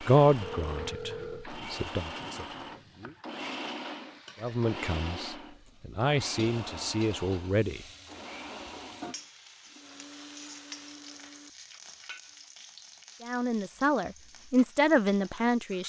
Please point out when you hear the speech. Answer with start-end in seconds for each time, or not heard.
0.1-3.1, 4.4-7.8, 13.2-15.8.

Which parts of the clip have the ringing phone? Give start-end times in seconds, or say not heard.
0.4-1.5.